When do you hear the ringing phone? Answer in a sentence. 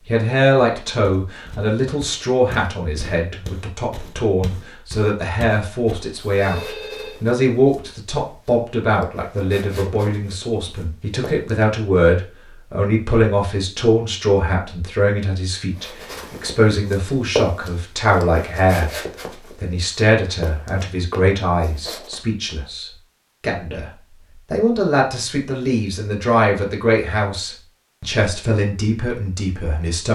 The ringing phone can be heard from 6.3 to 7.2 s.